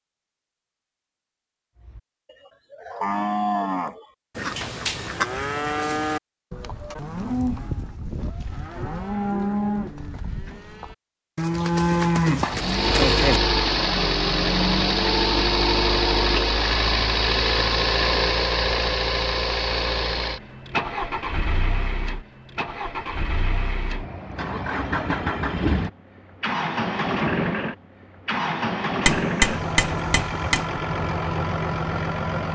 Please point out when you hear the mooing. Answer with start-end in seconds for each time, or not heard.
1.8-13.4.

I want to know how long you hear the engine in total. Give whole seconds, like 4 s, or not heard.
20 s.